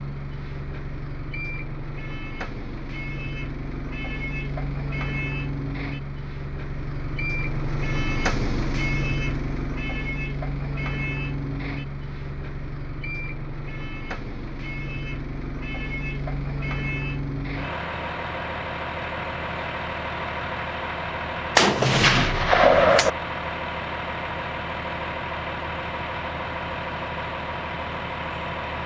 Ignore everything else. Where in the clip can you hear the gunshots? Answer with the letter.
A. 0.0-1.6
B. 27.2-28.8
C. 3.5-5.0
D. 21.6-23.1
D.